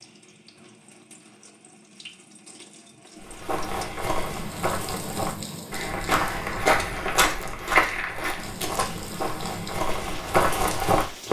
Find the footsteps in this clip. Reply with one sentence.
You can hear the footsteps from 3.2 to 11.2 s.